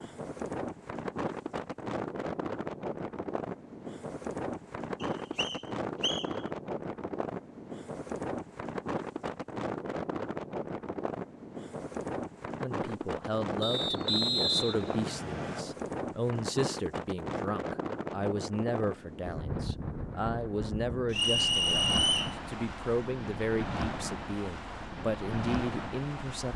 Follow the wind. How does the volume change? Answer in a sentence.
The loudness of the wind stays about the same.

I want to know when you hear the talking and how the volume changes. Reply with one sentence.
You can hear the talking from 12.6 to 26.5 s, at a steady volume.